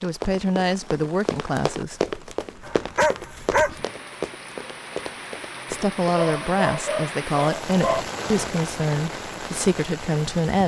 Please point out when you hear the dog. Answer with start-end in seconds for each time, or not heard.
2.6-3.8, 6.0-8.0.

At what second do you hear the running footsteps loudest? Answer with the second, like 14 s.
2 s.